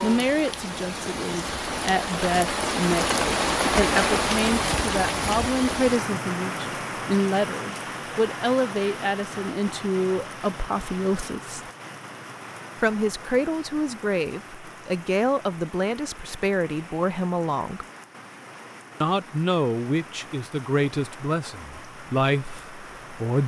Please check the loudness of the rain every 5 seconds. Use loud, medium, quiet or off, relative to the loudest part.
loud, medium, quiet, quiet, quiet.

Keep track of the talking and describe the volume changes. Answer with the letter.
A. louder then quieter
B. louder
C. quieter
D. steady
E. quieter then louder
D.